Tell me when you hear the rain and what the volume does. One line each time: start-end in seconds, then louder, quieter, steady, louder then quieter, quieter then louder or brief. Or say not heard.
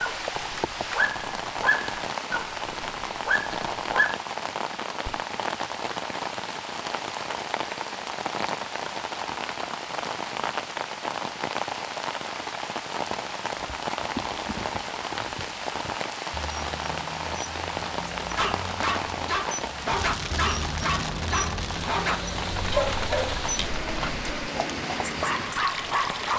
0.0-26.3 steady.